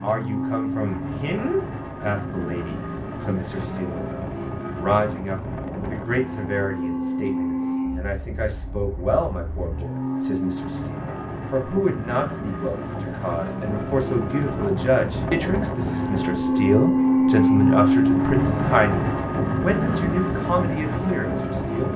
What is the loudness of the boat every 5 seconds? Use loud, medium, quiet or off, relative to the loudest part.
medium, medium, medium, loud, medium.